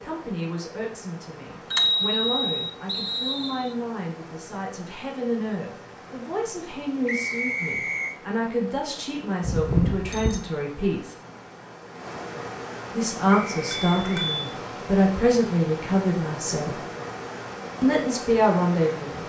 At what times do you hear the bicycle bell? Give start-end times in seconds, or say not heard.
1.7-2.6, 9.4-10.4, 13.9-14.4.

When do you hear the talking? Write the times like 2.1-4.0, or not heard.
0.0-11.2, 12.9-16.8, 17.8-19.2.